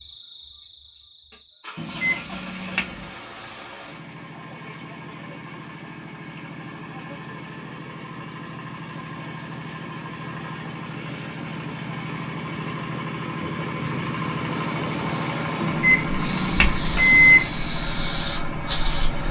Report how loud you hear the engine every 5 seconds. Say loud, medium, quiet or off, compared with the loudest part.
medium, medium, loud, loud.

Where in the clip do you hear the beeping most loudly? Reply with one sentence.
The loudest moment of the beeping is at 17 seconds.